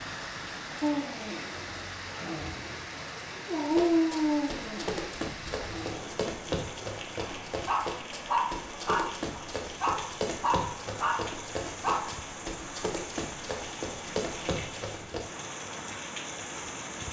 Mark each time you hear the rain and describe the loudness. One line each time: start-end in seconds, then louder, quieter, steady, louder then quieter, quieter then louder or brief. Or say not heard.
0.0-17.0 steady.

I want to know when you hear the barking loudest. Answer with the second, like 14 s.
4 s.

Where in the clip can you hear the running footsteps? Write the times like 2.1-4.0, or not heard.
3.7-15.3.